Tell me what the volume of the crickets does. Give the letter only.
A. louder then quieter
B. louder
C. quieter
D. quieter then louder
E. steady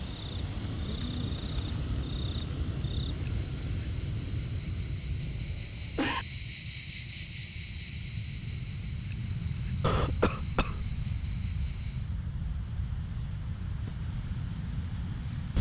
A.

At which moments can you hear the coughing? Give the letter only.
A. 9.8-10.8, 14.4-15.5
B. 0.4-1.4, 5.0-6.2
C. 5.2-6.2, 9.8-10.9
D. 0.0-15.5
C.